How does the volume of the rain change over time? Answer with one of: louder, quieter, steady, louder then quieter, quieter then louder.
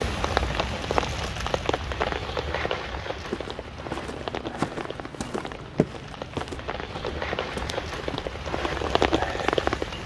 quieter then louder.